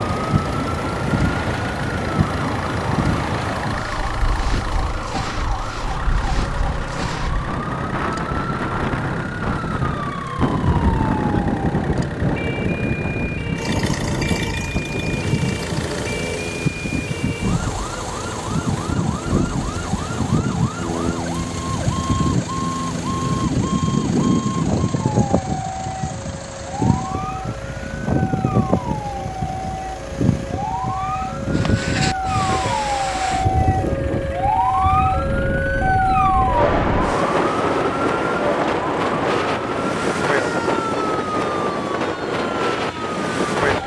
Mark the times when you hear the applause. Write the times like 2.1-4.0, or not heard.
not heard.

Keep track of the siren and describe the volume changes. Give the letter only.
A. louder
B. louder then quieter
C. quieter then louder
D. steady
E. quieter
A.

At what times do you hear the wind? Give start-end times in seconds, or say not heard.
0.0-43.8.